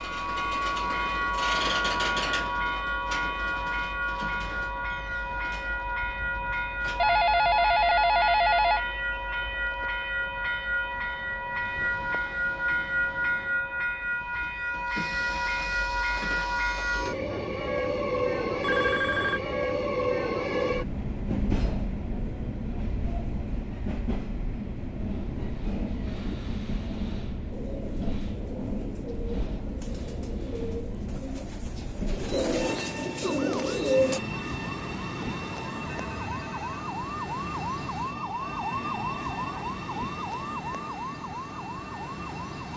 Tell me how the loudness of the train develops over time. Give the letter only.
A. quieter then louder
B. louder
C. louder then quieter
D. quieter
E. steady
D.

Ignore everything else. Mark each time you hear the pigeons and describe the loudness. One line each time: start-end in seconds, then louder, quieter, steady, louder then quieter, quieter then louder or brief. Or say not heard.
27.5-34.2 louder.